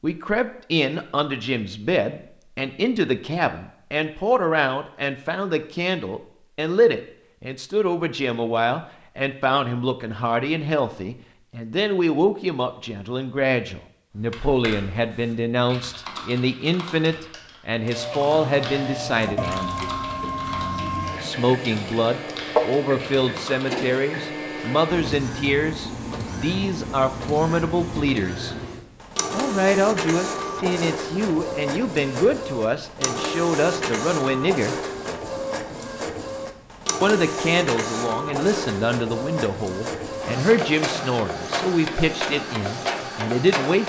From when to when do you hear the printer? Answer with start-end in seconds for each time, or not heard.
17.8-43.8.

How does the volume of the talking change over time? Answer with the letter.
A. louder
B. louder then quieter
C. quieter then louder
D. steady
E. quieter
D.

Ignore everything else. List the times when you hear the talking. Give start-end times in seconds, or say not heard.
0.0-19.8, 21.2-28.6, 29.3-34.8, 37.0-43.8.